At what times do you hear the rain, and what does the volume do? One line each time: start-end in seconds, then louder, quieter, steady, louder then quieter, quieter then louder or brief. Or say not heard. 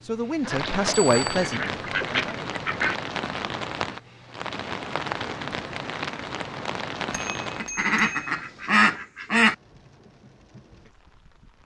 0.0-11.6 quieter.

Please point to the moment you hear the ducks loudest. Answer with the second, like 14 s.
9 s.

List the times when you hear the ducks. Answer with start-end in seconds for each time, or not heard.
0.4-3.0, 7.5-9.6.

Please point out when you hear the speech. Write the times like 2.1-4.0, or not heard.
0.0-2.5.